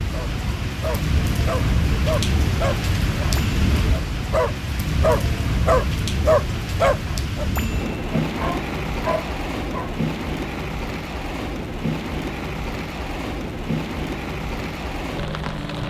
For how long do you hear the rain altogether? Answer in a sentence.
The rain can be heard for 16 seconds in total.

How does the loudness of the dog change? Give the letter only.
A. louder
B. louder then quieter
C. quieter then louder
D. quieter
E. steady
B.